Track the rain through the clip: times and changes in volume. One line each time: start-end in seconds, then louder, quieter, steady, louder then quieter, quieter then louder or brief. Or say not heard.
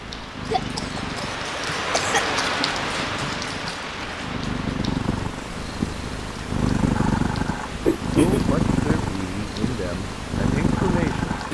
0.0-11.4 quieter.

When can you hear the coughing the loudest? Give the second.
8 s.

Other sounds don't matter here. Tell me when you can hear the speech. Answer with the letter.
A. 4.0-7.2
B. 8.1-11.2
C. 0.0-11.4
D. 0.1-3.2
B.